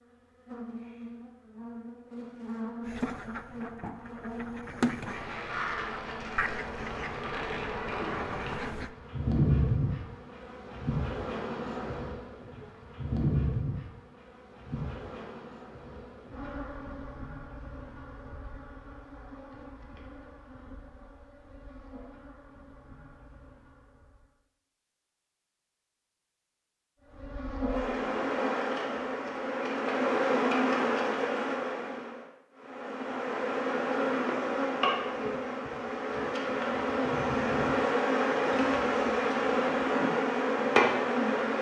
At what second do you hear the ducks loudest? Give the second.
5 s.